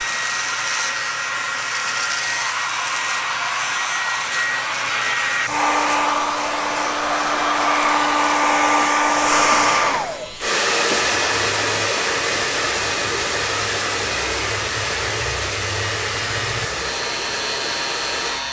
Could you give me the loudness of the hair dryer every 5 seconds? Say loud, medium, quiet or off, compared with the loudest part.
medium, loud, loud, medium.